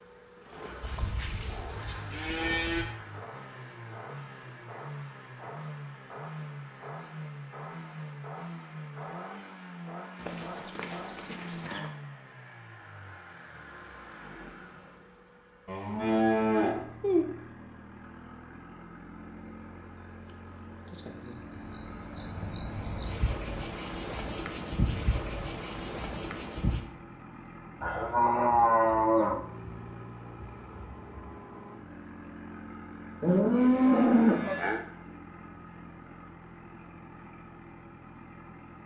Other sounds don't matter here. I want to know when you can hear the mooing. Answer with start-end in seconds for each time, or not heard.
0.8-2.9, 10.2-11.9, 15.7-17.2, 27.8-29.4, 33.2-34.8.